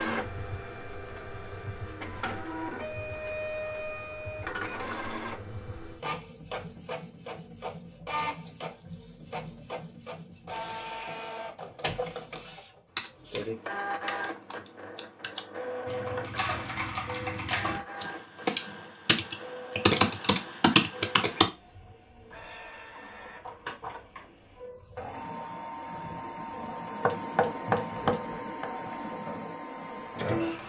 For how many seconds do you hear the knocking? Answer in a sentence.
You can hear the knocking for 2 seconds altogether.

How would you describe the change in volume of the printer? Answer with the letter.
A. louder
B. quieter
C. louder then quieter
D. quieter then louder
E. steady
D.